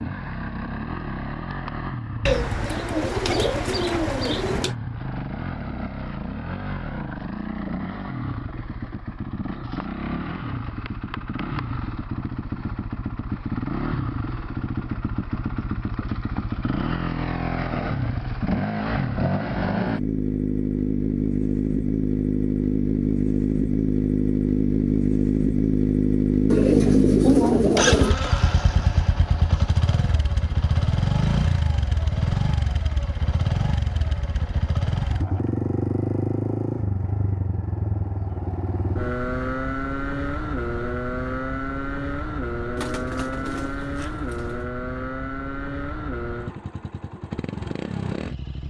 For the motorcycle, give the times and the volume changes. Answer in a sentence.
The motorcycle can be heard from 0.0 to 48.6 s, getting louder then quieter.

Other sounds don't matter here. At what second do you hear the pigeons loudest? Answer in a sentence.
The loudest moment of the pigeons is at 27 seconds.